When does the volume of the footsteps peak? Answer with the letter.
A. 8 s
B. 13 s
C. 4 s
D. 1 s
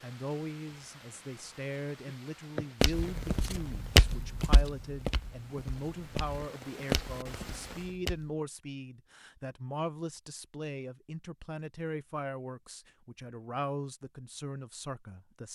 C.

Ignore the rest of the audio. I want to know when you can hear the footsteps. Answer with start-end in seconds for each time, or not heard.
2.5-8.2.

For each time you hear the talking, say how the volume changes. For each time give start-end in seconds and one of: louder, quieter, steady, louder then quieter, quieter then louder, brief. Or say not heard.
0.0-15.4 steady.